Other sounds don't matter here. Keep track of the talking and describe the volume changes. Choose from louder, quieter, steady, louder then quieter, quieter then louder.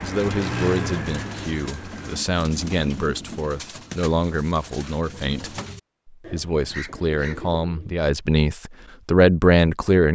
louder.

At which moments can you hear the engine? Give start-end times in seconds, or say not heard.
0.0-2.2.